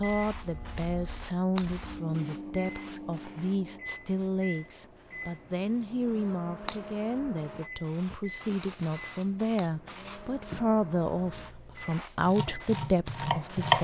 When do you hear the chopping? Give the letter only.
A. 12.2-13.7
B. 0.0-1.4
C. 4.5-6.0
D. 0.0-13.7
A.